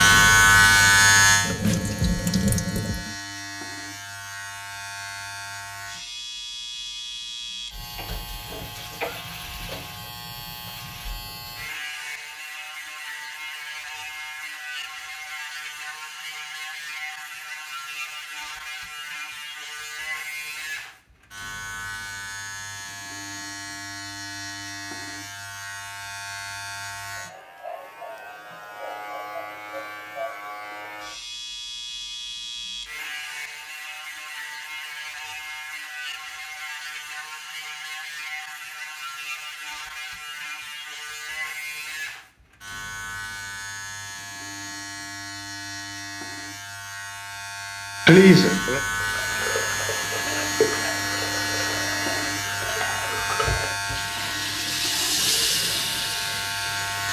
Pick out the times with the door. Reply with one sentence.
The door can't be heard in this clip.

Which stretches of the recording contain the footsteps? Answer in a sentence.
You can't hear the footsteps here.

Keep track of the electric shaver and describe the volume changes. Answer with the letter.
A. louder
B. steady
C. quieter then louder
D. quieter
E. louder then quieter
C.